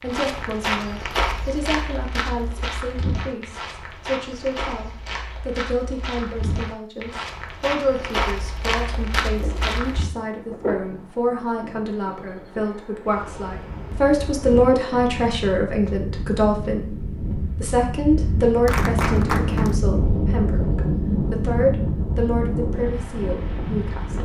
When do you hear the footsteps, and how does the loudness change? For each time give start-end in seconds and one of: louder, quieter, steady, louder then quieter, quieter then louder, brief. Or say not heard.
0.0-10.1 quieter then louder.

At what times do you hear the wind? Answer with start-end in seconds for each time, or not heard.
9.3-24.1.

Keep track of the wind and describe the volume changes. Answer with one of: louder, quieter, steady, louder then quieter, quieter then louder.
louder.